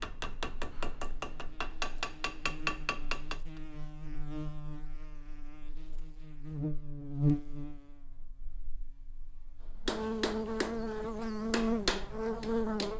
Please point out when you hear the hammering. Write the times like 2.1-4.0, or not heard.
0.0-3.4, 9.8-12.9.